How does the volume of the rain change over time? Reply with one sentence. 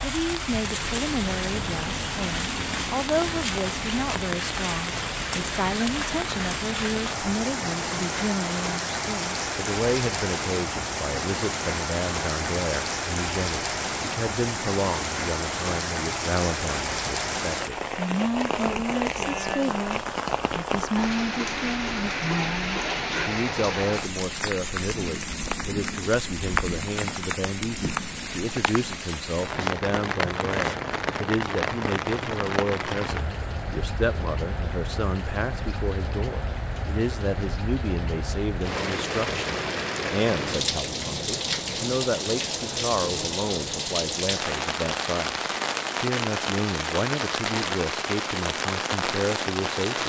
The loudness of the rain stays about the same.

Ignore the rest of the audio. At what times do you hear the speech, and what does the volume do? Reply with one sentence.
You can hear the speech from 0.0 to 50.0 s, at a steady volume.